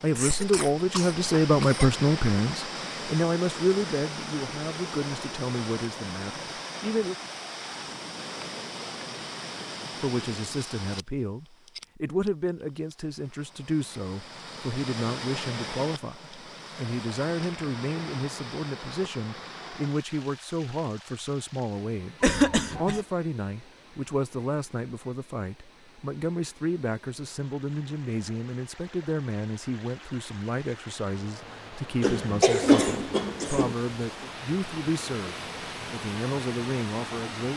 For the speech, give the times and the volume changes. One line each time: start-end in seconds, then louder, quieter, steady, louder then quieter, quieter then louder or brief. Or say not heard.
0.0-7.2 quieter
10.0-37.5 steady.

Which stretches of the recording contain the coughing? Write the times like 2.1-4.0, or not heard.
0.1-1.9, 22.2-23.0, 32.0-33.8.